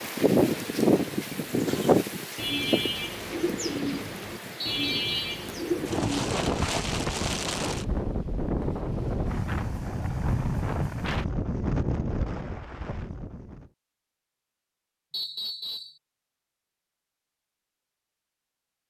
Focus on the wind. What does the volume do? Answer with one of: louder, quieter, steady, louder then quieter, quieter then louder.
quieter then louder.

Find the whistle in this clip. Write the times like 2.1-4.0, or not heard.
4.6-5.2, 15.1-15.9.